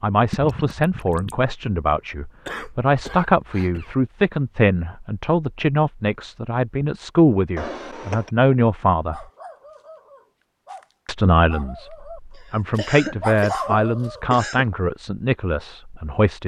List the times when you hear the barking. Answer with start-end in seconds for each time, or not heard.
9.1-14.4.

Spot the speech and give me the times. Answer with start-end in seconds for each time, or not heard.
0.0-9.2, 11.1-16.4.